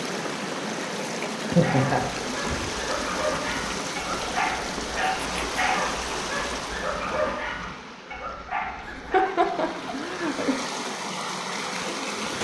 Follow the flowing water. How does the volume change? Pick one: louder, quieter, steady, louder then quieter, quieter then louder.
quieter then louder.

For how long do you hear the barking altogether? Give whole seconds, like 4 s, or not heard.
8 s.